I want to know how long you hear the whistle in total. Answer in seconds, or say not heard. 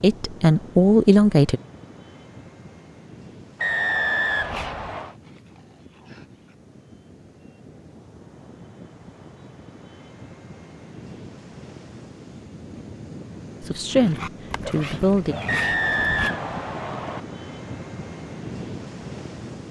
3 s.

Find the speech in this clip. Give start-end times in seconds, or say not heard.
0.0-1.6, 13.6-15.3.